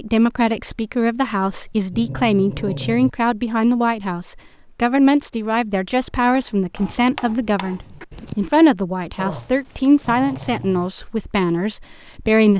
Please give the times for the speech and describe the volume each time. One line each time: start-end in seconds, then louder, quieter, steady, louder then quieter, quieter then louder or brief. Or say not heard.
0.0-12.5 steady.